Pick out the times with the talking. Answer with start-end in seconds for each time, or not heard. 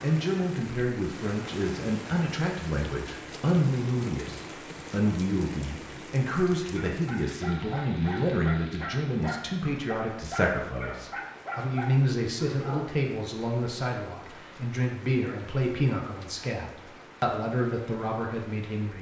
0.0-18.9.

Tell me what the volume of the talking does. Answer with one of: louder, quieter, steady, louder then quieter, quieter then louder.
steady.